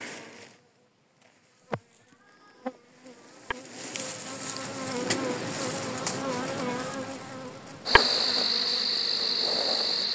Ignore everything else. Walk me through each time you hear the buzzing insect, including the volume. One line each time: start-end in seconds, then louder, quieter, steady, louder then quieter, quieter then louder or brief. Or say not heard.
0.0-10.0 louder.